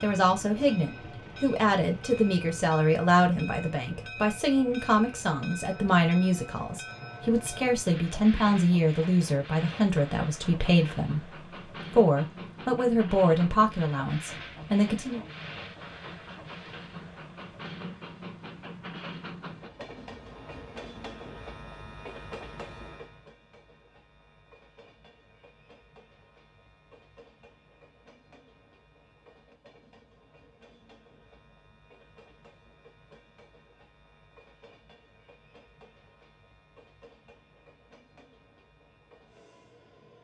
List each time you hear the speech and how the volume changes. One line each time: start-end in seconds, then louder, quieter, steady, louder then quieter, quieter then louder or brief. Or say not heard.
0.0-15.2 steady.